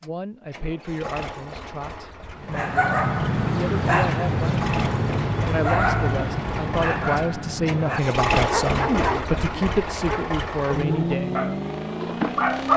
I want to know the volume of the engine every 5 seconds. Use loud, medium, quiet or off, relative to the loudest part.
medium, loud, loud.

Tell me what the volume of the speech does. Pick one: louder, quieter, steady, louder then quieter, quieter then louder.
louder.